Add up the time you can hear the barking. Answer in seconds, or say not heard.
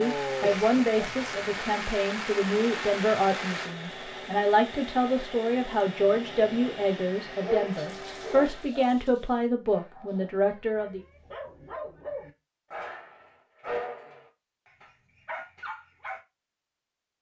9 s.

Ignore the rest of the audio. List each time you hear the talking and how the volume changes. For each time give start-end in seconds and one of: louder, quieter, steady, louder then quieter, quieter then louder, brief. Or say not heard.
0.0-11.0 steady.